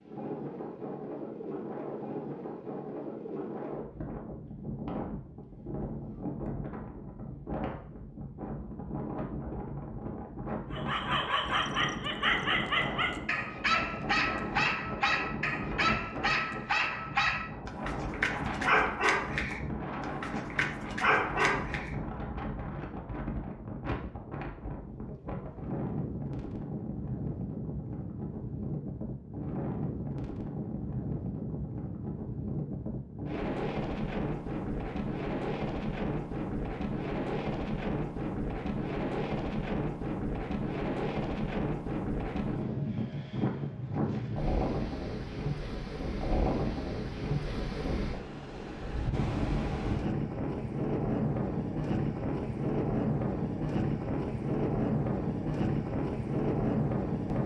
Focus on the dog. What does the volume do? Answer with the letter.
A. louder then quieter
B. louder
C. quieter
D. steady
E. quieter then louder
D.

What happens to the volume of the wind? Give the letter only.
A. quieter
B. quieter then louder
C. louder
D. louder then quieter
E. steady
C.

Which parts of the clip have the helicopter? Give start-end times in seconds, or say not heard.
not heard.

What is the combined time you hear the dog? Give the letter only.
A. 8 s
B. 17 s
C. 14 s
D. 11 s
D.